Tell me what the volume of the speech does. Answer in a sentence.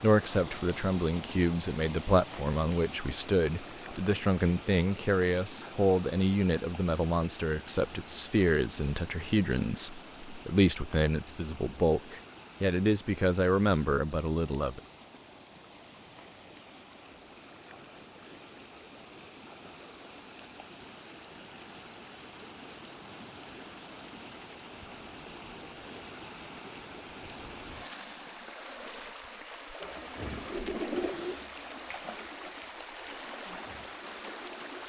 The volume of the speech stays about the same.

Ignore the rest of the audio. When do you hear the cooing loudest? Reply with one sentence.
The volume of the cooing peaks at 31 seconds.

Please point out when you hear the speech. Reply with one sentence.
The speech can be heard from 0.0 to 14.8 s.